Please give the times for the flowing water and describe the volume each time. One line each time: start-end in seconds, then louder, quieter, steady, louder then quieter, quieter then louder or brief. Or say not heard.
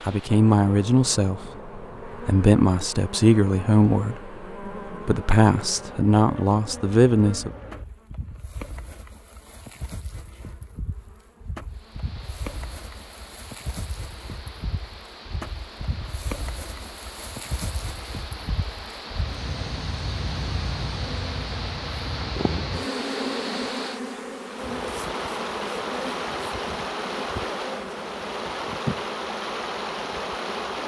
11.7-30.8 louder.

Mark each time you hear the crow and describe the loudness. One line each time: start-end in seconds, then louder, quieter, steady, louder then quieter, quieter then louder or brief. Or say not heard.
not heard.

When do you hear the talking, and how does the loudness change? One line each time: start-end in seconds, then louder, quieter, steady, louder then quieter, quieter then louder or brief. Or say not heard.
0.0-7.5 steady.